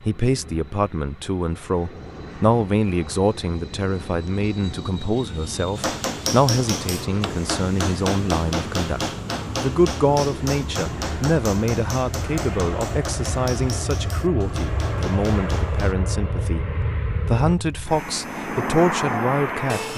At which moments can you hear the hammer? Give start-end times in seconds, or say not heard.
5.8-15.9.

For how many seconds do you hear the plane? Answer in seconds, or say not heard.
20 s.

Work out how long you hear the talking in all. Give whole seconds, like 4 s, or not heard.
20 s.